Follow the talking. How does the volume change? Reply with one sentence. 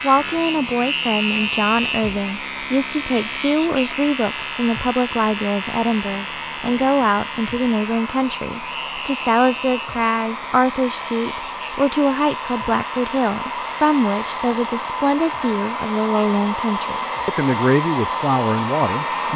The loudness of the talking stays about the same.